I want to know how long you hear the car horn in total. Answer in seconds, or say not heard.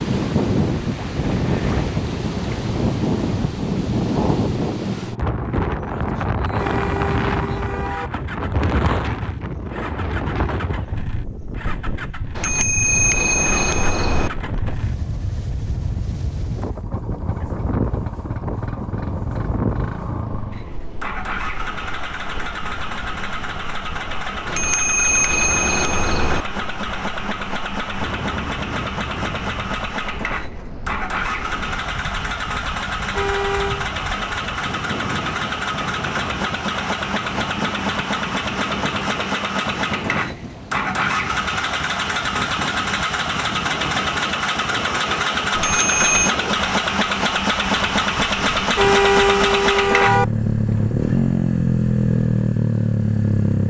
4 s.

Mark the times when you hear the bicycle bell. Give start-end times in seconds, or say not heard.
12.3-14.3, 24.4-26.4, 45.5-46.4.